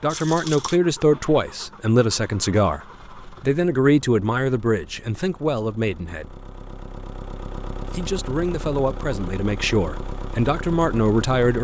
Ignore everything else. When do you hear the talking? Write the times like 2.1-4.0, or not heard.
0.0-6.4, 8.0-11.5.